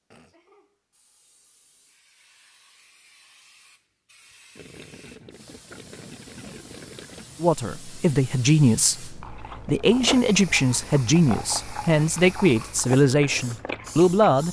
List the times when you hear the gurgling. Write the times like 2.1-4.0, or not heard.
4.5-7.2.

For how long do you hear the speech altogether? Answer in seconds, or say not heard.
7 s.